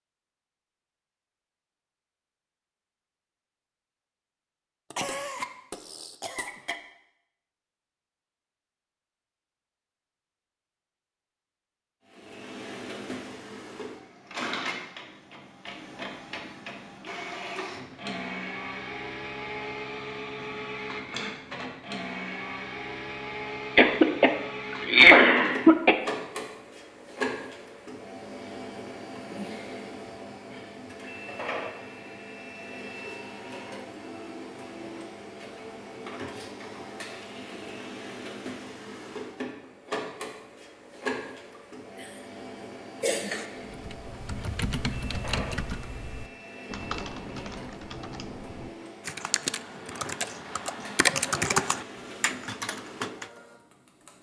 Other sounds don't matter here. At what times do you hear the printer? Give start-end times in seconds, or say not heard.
12.1-54.1.